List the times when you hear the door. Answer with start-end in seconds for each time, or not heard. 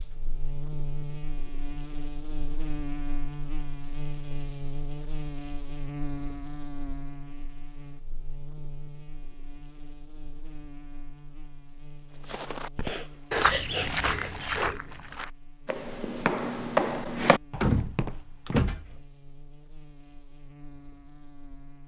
17.6-18.9.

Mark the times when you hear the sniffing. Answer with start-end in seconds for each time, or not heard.
12.8-14.7.